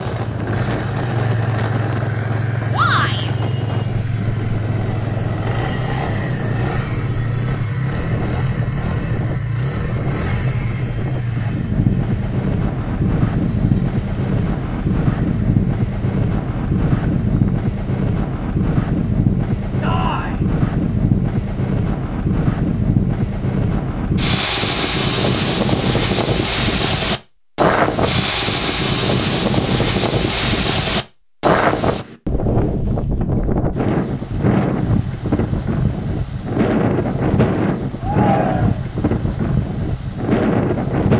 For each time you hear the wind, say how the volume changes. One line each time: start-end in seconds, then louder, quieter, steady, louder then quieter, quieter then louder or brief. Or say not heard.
0.0-41.1 louder.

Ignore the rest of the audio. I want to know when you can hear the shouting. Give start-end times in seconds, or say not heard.
2.7-3.3, 19.8-20.4, 38.0-38.9.